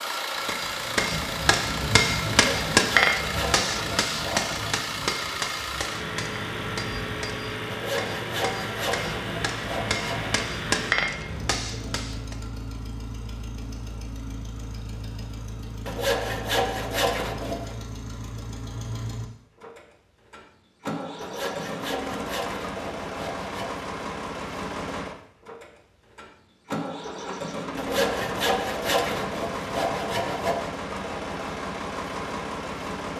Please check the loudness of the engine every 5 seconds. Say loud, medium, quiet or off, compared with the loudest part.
loud, loud, medium, medium, loud, loud, loud.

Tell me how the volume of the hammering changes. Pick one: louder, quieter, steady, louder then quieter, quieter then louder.
quieter then louder.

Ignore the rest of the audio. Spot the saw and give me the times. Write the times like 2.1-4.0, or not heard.
2.4-4.7, 7.7-10.4, 15.8-17.8, 21.2-23.8, 27.8-30.7.